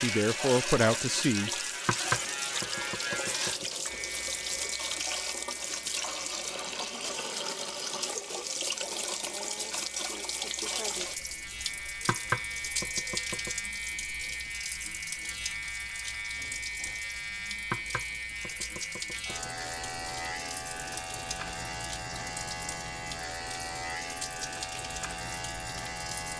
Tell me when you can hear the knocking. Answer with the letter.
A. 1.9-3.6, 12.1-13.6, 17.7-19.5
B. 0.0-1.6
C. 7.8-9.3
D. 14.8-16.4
A.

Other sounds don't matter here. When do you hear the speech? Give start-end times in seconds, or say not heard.
0.0-1.6.